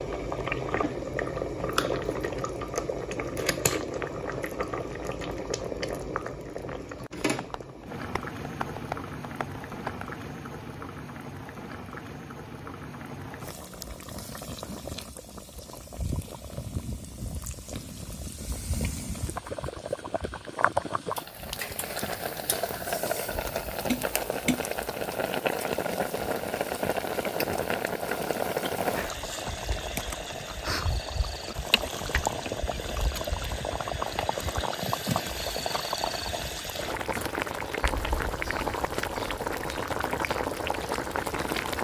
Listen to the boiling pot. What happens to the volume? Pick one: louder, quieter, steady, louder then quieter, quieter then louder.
quieter then louder.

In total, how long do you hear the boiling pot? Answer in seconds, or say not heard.
42 s.